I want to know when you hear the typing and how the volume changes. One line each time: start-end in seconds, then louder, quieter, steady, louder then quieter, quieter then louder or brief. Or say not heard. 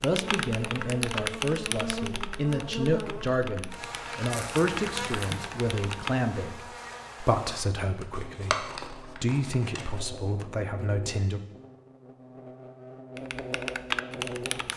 0.0-6.2 quieter then louder
13.2-14.7 brief.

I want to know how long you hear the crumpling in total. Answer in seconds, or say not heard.
3 s.